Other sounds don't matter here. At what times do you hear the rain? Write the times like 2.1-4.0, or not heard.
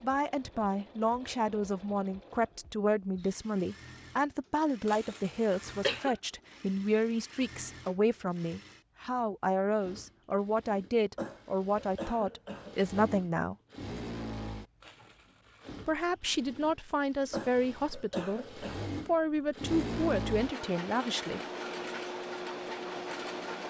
not heard.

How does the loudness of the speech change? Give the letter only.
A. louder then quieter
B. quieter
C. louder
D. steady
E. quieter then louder
D.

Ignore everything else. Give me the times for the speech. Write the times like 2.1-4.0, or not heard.
0.0-13.6, 15.8-21.4.